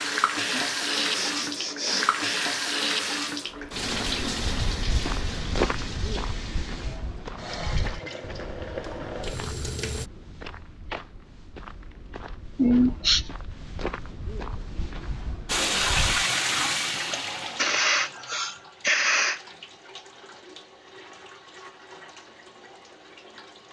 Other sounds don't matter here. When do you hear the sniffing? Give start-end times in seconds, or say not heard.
0.5-2.2, 12.6-13.2, 17.1-19.4.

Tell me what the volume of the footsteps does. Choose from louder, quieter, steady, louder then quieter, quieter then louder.
quieter then louder.